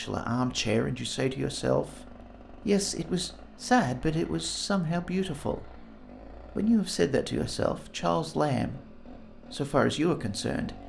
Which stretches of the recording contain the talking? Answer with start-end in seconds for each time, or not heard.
0.0-2.0, 2.6-5.7, 6.5-8.8, 9.5-10.8.